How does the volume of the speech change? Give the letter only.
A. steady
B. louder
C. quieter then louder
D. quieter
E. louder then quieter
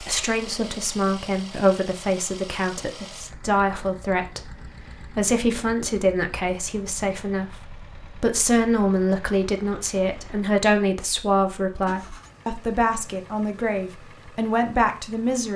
A.